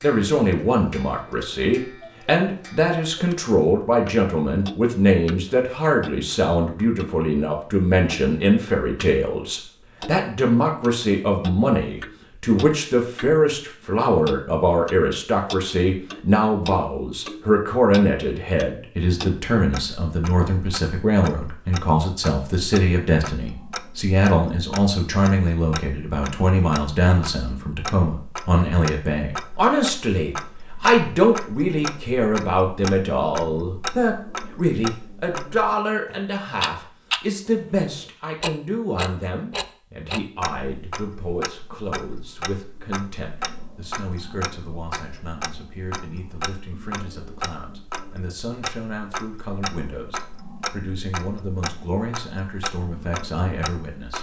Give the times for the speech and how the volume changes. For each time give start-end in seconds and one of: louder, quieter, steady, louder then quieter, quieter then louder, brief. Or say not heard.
0.0-54.1 quieter.